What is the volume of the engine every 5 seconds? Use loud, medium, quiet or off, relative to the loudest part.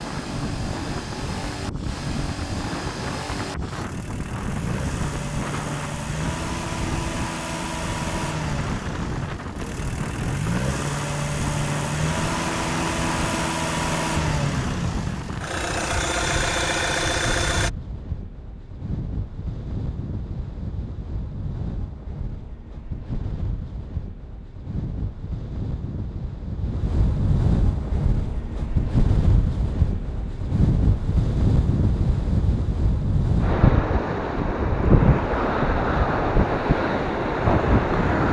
medium, medium, loud, loud, off, off, off, off.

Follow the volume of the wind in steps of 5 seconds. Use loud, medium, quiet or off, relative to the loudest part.
medium, medium, medium, quiet, quiet, medium, loud, loud.